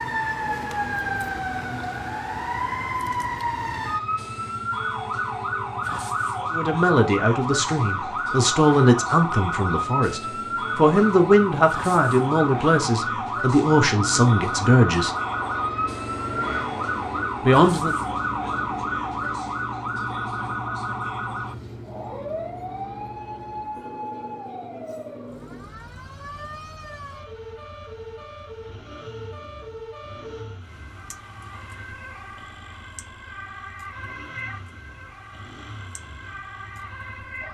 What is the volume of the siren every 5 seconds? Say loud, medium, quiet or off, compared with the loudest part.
loud, loud, loud, loud, medium, quiet, quiet, quiet.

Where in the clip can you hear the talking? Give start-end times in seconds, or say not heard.
6.5-15.2, 17.4-17.9.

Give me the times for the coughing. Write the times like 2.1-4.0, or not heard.
not heard.